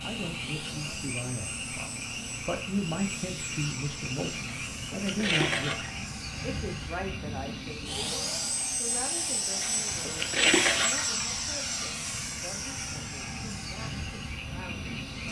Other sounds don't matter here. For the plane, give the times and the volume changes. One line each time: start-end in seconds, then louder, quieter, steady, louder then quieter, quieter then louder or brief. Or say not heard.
0.0-15.2 louder then quieter.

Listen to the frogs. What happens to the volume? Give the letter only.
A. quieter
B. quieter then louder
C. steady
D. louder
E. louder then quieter
B.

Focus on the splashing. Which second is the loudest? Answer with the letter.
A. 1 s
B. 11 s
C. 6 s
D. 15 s
B.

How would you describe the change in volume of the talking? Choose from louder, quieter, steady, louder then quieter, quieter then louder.
quieter.